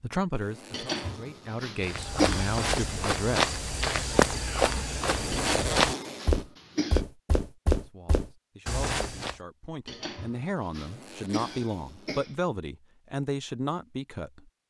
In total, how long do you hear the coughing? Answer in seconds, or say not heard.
6 s.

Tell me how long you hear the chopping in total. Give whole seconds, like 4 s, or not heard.
not heard.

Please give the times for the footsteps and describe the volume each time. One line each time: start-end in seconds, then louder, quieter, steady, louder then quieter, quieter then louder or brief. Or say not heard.
1.8-9.3 steady.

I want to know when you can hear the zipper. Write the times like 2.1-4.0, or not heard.
0.3-1.6, 5.1-6.5, 10.8-12.2.